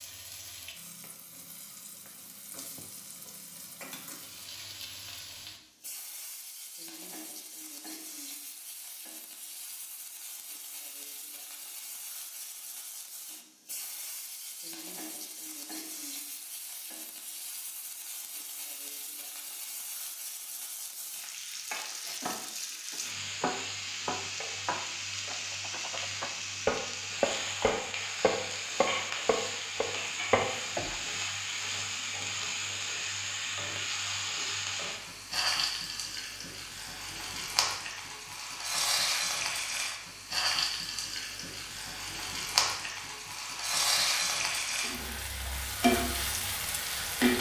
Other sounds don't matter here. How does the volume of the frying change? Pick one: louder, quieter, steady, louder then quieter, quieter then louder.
louder.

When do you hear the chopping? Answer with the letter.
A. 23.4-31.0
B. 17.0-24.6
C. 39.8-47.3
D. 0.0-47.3
A.